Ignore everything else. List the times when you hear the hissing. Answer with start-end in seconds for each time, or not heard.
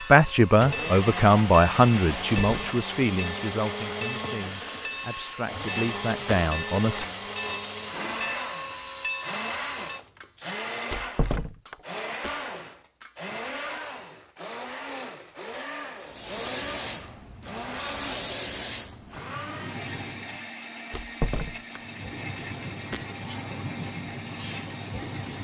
0.0-10.6, 16.0-20.4, 21.8-25.3.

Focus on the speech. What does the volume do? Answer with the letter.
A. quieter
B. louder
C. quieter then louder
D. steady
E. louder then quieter
C.